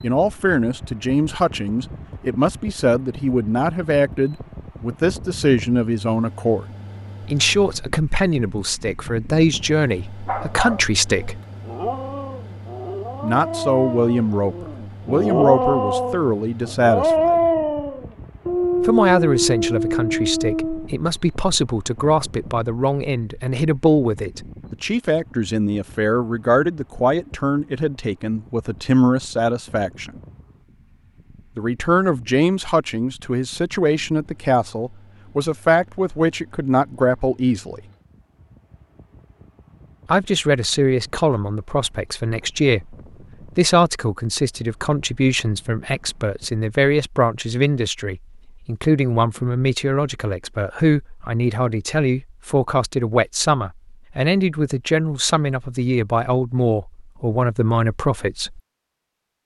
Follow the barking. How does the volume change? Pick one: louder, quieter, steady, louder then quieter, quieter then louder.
louder.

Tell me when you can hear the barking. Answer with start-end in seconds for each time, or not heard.
10.2-20.9.